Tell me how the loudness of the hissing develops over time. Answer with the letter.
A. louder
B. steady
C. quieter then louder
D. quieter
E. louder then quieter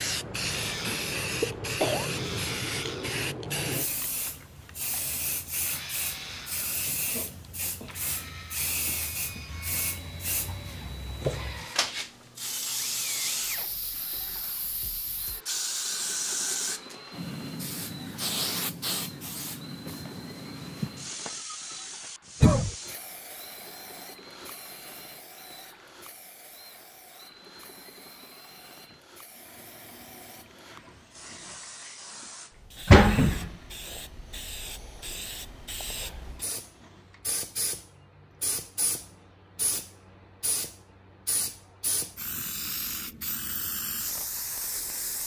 C.